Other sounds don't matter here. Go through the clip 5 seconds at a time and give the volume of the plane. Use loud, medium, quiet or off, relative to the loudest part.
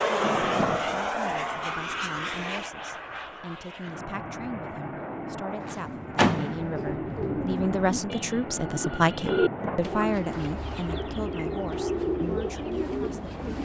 loud, medium, medium.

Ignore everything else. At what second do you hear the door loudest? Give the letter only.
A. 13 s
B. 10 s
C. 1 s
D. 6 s
D.